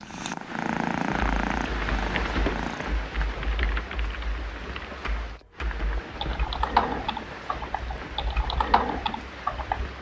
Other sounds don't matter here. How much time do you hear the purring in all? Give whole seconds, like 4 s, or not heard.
3 s.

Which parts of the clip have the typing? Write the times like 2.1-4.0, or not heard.
1.3-9.9.